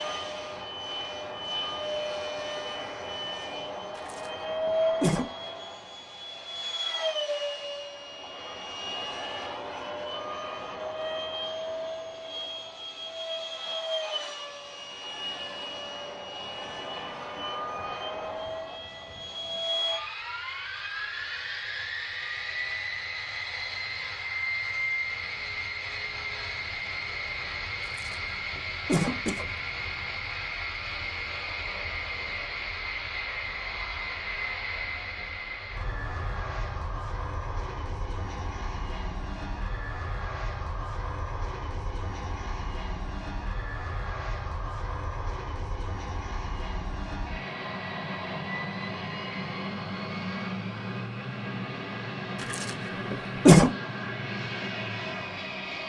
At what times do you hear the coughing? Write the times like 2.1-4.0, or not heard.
4.0-5.2, 27.9-29.5, 52.4-53.7.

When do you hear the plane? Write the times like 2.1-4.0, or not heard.
0.0-55.8.